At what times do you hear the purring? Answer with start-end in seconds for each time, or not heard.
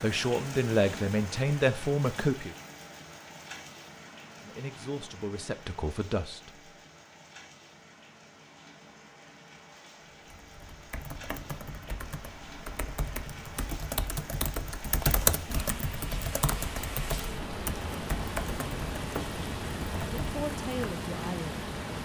not heard.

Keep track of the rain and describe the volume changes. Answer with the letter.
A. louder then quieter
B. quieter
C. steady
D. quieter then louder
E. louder
D.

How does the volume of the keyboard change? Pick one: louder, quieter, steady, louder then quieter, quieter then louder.
louder then quieter.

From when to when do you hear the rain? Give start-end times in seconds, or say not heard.
0.0-22.0.